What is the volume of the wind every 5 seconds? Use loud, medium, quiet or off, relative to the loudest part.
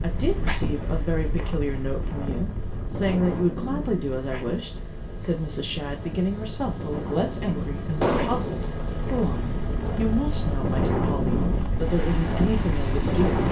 medium, medium, loud.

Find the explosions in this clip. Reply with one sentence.
You can hear the explosions from 8.0 to 8.5 s.